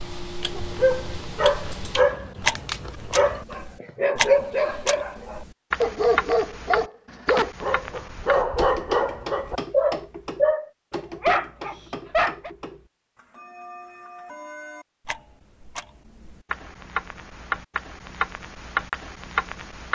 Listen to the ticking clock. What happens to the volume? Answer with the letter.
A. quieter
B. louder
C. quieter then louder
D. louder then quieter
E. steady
C.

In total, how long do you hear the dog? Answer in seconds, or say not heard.
12 s.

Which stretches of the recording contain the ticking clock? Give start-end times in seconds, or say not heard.
0.0-19.9.